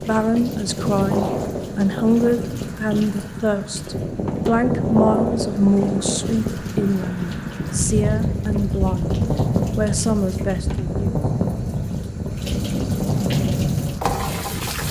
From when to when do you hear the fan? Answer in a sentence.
You can hear the fan from 0.0 to 14.8 s.